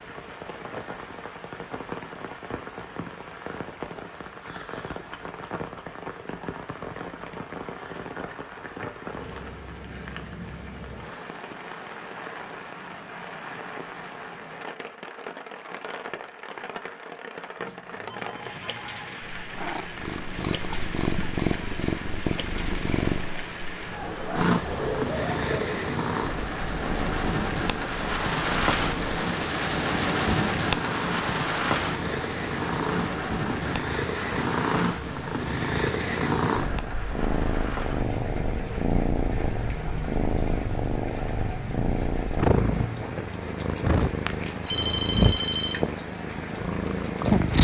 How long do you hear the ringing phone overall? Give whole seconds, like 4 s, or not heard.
3 s.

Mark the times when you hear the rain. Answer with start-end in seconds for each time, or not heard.
0.0-47.5.